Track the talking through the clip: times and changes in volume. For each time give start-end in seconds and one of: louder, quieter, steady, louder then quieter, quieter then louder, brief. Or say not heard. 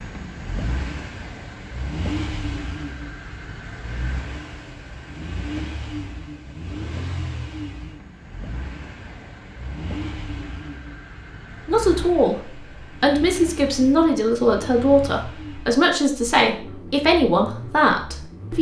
11.7-18.5 steady.